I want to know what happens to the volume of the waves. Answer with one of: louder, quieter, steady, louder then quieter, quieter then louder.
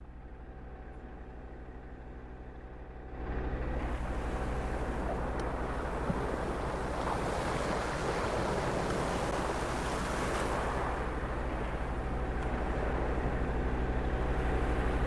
louder then quieter.